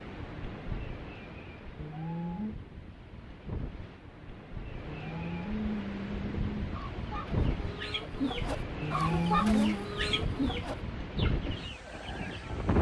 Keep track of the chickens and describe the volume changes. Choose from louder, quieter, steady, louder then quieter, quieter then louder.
louder then quieter.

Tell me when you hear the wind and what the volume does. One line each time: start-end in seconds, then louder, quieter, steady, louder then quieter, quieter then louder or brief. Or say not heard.
0.0-12.7 louder.